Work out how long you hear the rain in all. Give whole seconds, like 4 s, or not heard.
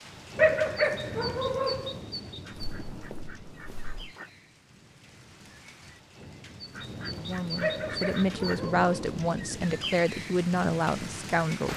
12 s.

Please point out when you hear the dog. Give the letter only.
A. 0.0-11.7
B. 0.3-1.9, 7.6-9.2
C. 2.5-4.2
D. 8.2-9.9
B.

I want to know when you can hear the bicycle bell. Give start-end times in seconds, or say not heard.
not heard.